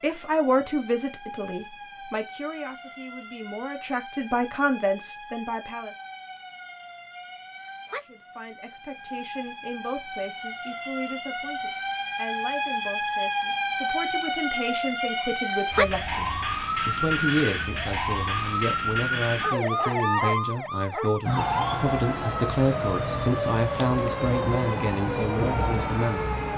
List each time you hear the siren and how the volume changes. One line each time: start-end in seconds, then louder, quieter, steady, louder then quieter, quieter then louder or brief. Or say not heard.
0.0-26.5 louder.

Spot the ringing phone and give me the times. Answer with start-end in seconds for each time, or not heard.
not heard.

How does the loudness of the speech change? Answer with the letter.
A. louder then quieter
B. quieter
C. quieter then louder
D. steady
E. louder
C.